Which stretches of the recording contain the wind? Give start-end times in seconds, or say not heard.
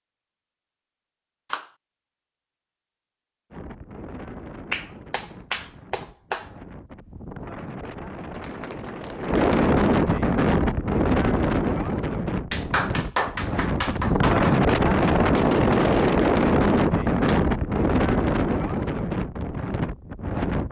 3.5-20.6.